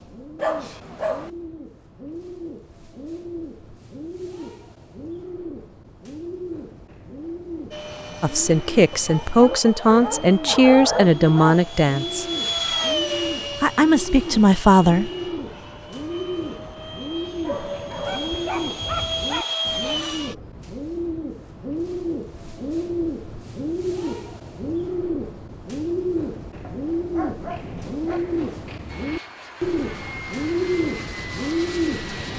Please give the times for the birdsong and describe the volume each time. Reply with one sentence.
The birdsong can be heard from 0.0 to 32.3 s, getting louder.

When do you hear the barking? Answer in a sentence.
The barking can be heard from 0.3 to 1.3 s, from 8.9 to 11.6 s, from 17.4 to 19.6 s and from 26.6 to 28.2 s.